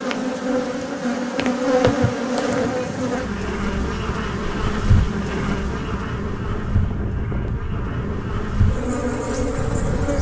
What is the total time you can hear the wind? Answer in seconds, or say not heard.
8 s.